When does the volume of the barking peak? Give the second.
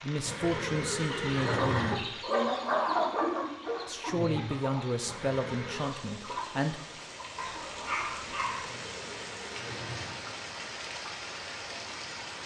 8 s.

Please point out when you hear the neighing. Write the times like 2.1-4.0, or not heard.
0.2-1.9, 5.0-6.0, 8.4-10.2.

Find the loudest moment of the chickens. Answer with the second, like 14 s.
3 s.